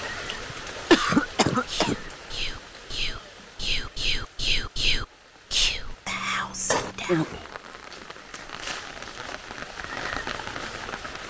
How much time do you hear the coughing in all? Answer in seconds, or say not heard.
2 s.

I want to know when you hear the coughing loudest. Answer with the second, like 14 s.
1 s.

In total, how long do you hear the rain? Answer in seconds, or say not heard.
11 s.